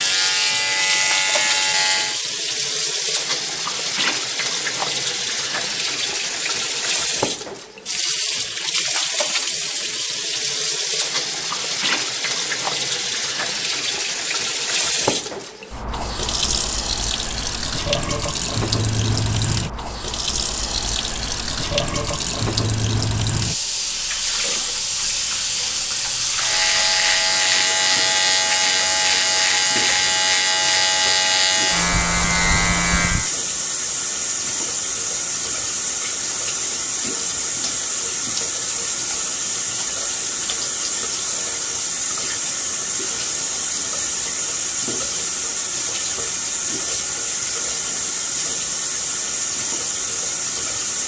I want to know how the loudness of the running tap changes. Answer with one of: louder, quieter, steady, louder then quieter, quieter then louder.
steady.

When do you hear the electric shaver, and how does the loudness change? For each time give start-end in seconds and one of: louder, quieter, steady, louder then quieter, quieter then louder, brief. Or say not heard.
0.0-2.2 brief
26.4-33.3 steady.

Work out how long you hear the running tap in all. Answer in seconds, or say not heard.
51 s.